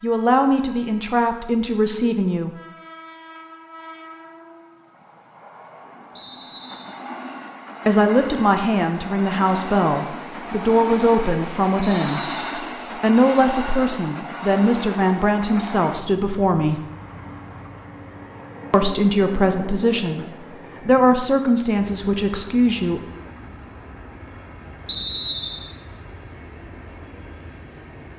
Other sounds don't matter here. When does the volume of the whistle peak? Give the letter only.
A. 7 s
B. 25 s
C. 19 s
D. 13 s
B.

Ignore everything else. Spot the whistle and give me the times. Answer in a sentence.
You can hear the whistle from 6.2 to 7.0 s, from 11.8 to 12.6 s and from 24.9 to 25.8 s.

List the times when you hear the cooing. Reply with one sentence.
The cooing can't be heard in this clip.